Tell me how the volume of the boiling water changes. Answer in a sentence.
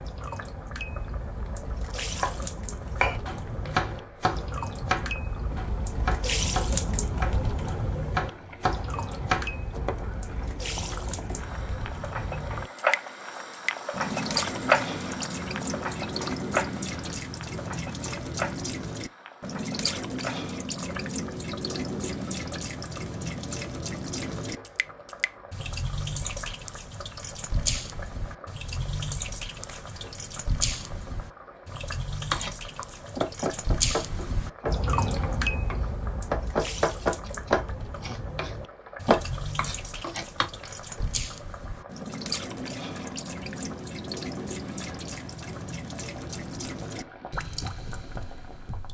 The loudness of the boiling water goes up, then down.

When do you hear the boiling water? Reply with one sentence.
The boiling water can be heard from 0.0 to 48.8 s.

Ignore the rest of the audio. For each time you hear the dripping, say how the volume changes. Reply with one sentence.
You can hear the dripping from 0.0 to 48.8 s, at a steady volume.